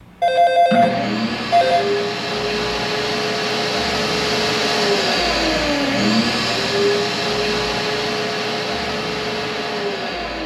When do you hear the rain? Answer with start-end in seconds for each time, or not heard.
not heard.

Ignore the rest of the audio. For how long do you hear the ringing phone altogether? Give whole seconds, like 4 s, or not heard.
2 s.